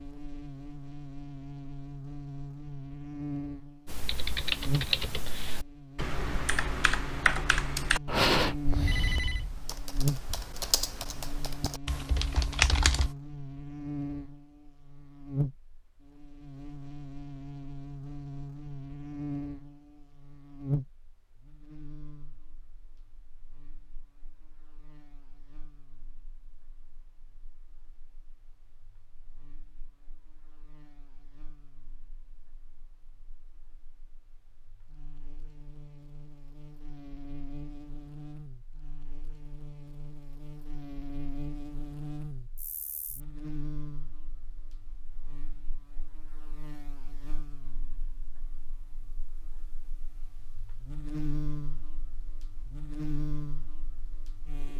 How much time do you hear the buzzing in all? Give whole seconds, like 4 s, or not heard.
55 s.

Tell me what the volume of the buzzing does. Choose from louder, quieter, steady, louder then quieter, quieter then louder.
quieter then louder.